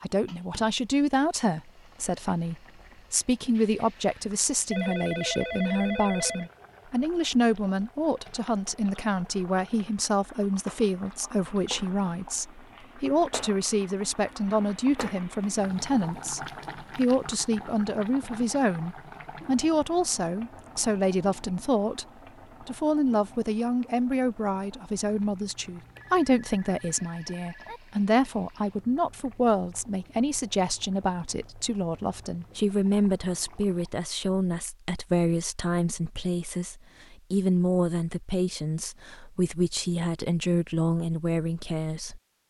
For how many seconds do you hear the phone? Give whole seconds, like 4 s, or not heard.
4 s.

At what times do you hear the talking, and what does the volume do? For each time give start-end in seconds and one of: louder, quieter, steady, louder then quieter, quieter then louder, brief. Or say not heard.
0.0-42.2 steady.